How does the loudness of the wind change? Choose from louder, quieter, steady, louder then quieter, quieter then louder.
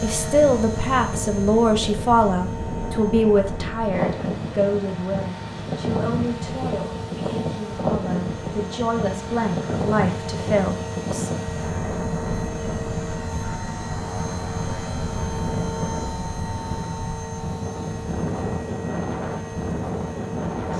steady.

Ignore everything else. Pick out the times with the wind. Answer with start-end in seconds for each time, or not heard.
0.0-20.7.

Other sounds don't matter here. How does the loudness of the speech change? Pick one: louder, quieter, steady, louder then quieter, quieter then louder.
quieter then louder.